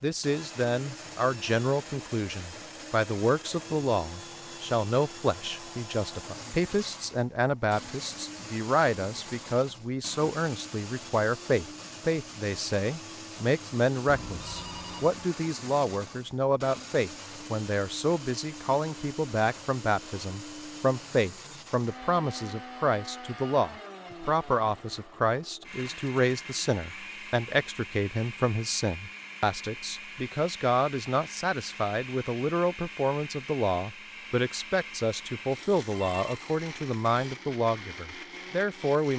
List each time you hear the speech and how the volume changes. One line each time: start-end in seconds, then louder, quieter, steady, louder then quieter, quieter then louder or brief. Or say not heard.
0.0-39.1 steady.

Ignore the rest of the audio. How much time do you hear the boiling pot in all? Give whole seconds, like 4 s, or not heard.
not heard.